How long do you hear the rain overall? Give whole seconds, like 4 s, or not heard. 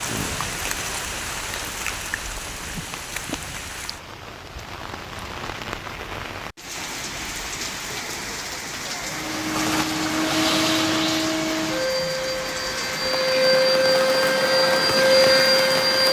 16 s.